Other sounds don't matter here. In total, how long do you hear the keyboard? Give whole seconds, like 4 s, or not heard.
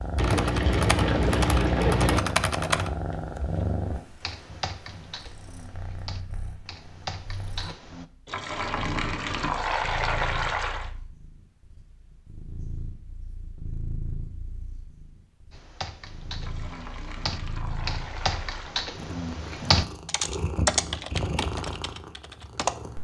15 s.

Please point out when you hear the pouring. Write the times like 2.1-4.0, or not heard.
0.1-2.2, 8.2-10.9, 16.4-18.8.